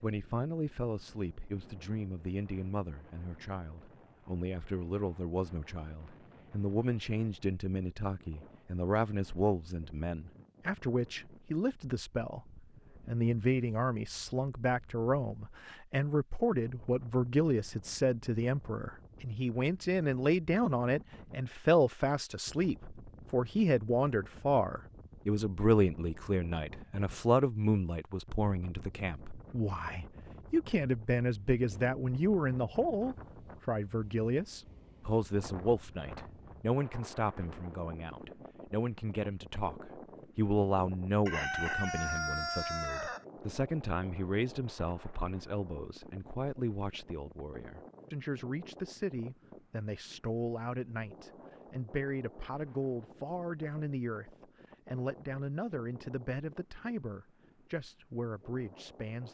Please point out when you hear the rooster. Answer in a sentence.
You can hear the rooster from 41.2 to 43.2 s.